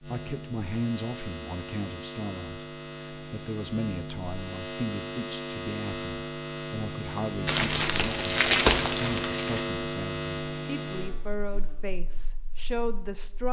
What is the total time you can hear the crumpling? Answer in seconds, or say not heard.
2 s.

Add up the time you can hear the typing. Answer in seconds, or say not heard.
not heard.